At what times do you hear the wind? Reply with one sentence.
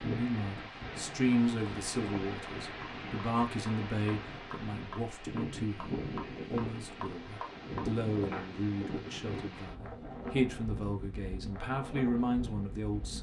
You can hear the wind from 0.0 to 13.1 s.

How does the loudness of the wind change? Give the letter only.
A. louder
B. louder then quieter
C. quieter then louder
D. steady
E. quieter
D.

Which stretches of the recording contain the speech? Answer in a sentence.
You can hear the speech from 0.0 to 13.1 s.